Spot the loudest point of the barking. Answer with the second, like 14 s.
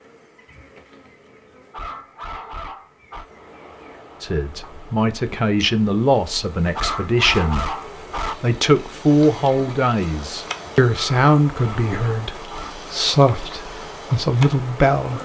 7 s.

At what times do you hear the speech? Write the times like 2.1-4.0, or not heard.
4.2-15.1.